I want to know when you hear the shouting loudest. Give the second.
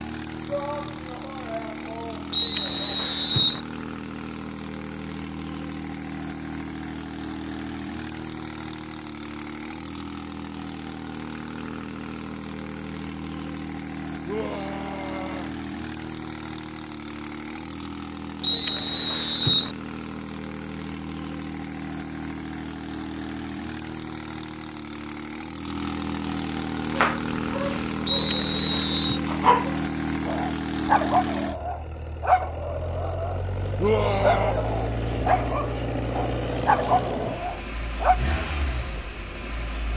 34 s.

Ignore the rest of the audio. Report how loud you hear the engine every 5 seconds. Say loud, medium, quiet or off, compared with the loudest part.
medium, medium, medium, medium, medium, loud, loud, loud.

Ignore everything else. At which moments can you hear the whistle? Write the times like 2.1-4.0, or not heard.
2.3-3.6, 18.4-19.7, 28.1-29.2.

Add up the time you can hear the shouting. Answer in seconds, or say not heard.
5 s.